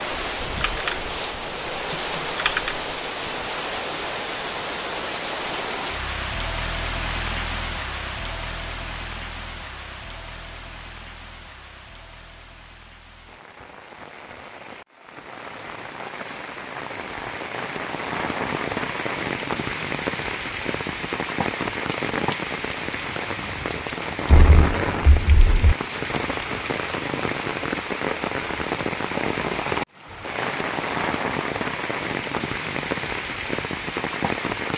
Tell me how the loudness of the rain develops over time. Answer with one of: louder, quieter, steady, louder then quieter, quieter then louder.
quieter then louder.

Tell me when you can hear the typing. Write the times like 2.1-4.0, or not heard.
0.4-1.1, 1.9-2.8, 24.2-25.8.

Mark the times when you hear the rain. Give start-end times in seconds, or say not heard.
0.0-34.7.